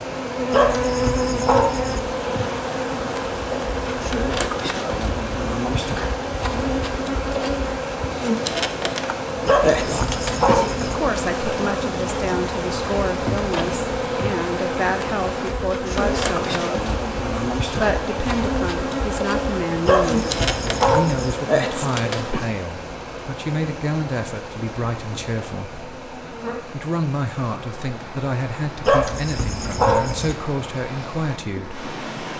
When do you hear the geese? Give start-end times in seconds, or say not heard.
not heard.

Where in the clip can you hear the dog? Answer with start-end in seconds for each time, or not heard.
0.5-2.0, 9.4-10.9, 19.9-21.4, 28.9-30.4.